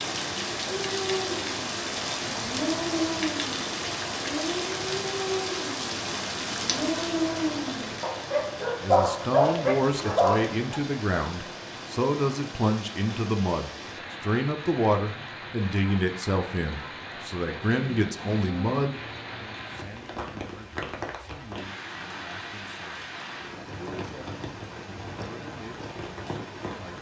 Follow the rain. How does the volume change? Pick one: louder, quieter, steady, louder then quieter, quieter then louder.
quieter.